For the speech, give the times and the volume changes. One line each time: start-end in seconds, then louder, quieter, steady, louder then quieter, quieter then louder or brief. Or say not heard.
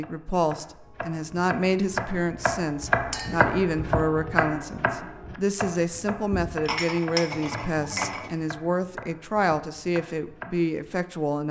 0.0-11.4 steady.